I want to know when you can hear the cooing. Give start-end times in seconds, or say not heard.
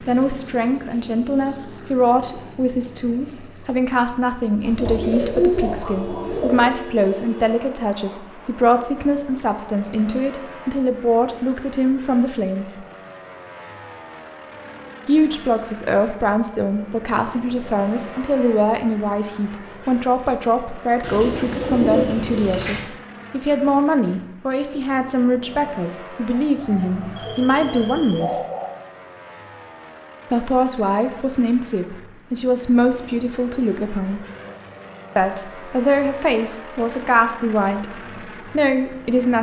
4.6-6.7, 21.0-22.8, 26.3-28.7.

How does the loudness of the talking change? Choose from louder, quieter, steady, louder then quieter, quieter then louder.
steady.